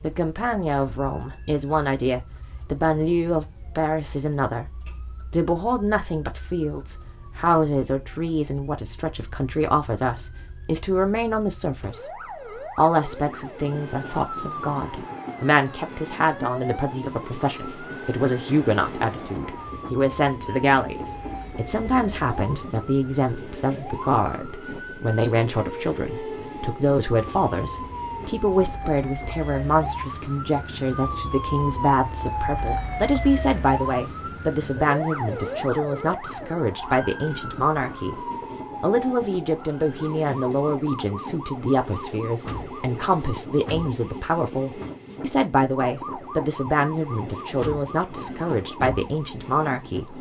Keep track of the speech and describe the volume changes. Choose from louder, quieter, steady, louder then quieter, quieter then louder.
steady.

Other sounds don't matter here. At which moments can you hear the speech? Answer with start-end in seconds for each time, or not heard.
0.0-4.7, 5.3-12.1, 12.8-38.1, 38.8-50.1.